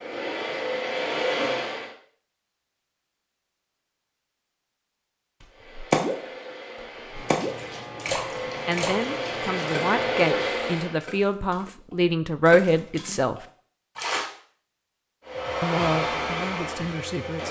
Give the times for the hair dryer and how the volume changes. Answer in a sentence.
The hair dryer can be heard briefly from 0.0 to 1.9 s; from 5.5 to 11.0 s, getting louder; and briefly from 15.2 to 17.4 s.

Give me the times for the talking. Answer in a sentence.
The talking can be heard from 8.7 to 13.4 s and from 15.6 to 17.4 s.